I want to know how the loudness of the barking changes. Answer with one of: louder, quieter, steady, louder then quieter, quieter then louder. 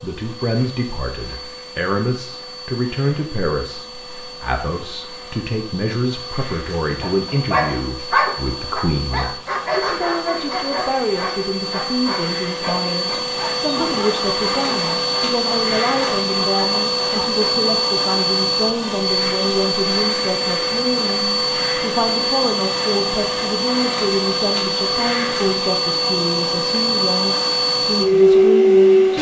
quieter.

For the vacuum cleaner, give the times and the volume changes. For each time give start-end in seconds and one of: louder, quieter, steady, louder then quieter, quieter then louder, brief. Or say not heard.
0.0-29.1 louder.